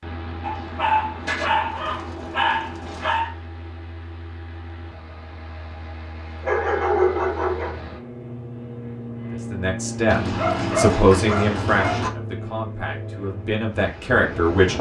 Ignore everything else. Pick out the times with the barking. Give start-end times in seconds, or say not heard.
0.4-3.3, 6.4-7.8, 10.1-12.1.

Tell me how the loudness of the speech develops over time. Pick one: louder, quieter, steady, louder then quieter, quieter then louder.
quieter then louder.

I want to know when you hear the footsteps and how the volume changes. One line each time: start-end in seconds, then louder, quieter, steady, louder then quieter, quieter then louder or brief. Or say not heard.
not heard.